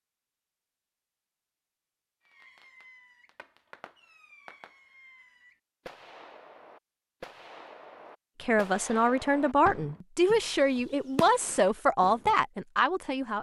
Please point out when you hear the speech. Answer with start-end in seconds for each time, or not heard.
8.4-13.3.